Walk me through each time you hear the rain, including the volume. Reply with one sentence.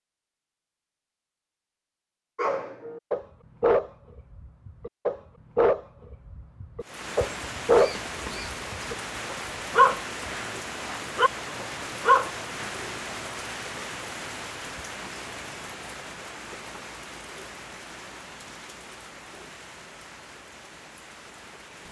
The rain can be heard from 6.8 to 21.8 s, getting quieter.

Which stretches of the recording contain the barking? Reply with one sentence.
The barking can be heard from 2.4 to 12.7 s.